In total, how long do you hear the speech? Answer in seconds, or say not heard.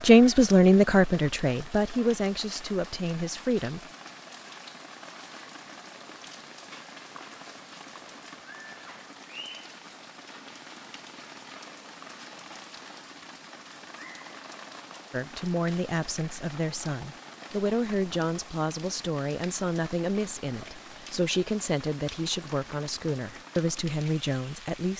14 s.